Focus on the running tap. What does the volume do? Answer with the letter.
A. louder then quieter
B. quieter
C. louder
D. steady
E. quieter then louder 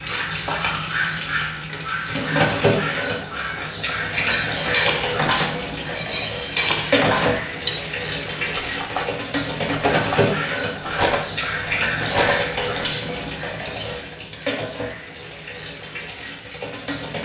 B.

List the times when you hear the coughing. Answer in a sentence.
You can't hear the coughing here.